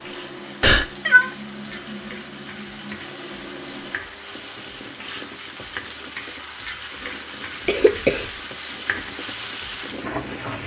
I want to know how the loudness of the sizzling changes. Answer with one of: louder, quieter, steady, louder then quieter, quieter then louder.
louder.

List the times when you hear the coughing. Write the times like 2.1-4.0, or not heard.
0.6-1.3, 7.7-8.3.